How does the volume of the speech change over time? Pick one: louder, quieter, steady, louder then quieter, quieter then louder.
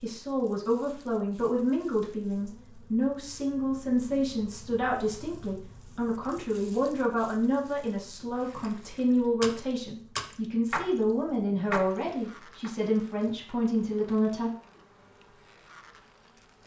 steady.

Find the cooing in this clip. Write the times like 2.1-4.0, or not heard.
not heard.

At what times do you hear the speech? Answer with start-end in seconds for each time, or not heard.
0.0-14.5.